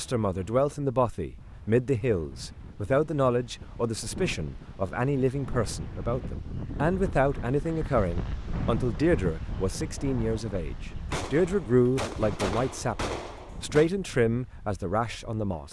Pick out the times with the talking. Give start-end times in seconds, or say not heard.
0.0-15.6.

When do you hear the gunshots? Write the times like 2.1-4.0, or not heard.
11.1-13.9.